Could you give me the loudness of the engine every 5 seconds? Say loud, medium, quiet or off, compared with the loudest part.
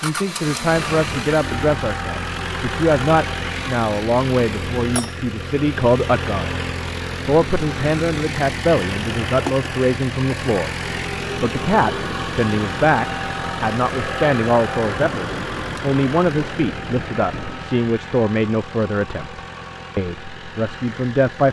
loud, loud, loud, medium, medium.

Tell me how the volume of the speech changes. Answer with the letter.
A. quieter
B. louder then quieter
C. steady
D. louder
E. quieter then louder
C.